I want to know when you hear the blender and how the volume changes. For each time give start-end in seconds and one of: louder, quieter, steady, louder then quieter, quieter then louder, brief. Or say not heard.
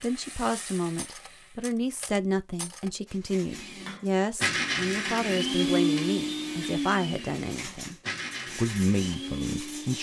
3.5-9.9 quieter.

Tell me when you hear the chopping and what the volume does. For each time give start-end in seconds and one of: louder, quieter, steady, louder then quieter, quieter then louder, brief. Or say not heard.
not heard.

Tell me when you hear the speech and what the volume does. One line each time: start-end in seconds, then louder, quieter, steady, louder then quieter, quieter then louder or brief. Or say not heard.
0.0-8.0 steady
8.6-9.9 brief.